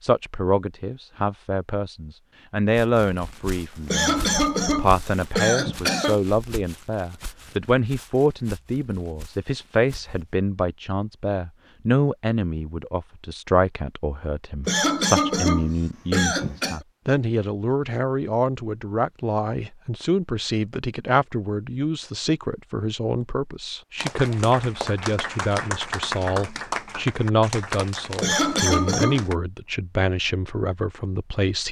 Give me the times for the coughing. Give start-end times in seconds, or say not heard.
3.9-6.2, 14.7-16.8, 28.2-29.2.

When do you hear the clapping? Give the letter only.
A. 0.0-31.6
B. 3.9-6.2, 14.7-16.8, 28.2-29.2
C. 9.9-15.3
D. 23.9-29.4
D.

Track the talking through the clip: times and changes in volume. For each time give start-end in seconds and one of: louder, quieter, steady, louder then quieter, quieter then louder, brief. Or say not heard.
0.0-31.6 steady.